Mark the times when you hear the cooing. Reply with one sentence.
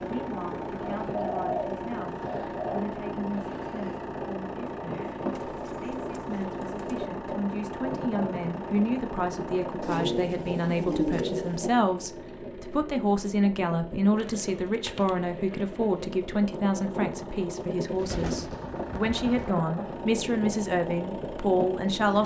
The cooing can be heard from 1.0 to 2.8 s, from 5.3 to 7.1 s, from 9.8 to 11.6 s, from 14.2 to 16.1 s and from 17.9 to 19.6 s.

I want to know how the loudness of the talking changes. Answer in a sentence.
The loudness of the talking goes up.